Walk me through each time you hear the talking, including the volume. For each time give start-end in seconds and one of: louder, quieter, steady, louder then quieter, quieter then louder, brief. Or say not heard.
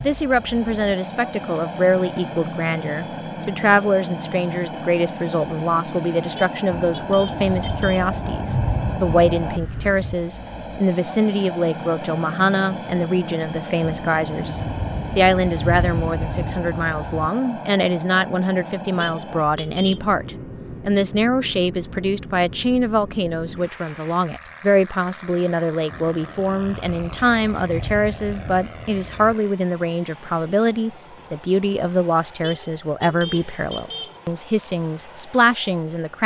0.0-36.2 steady.